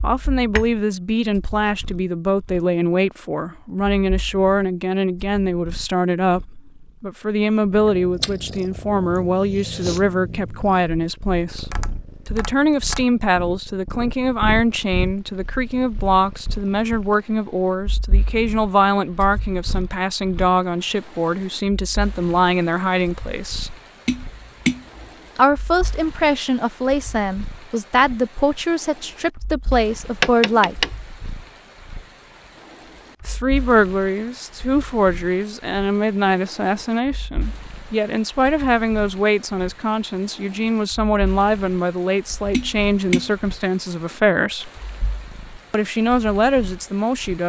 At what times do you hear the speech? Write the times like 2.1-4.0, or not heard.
0.0-11.7, 12.2-23.8, 25.4-30.8, 33.2-44.7, 45.7-47.4.